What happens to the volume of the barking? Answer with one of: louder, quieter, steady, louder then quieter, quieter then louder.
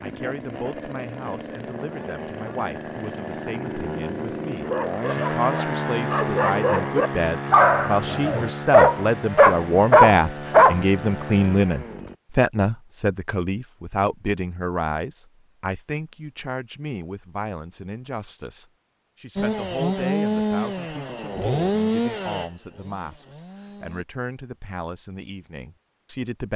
louder.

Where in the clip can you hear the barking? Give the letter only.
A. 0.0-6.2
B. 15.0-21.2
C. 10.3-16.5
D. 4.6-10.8
D.